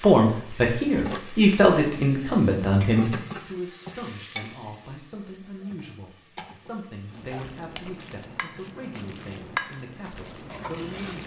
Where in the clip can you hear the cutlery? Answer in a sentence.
The cutlery can't be heard in this clip.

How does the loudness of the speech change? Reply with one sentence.
The volume of the speech goes down.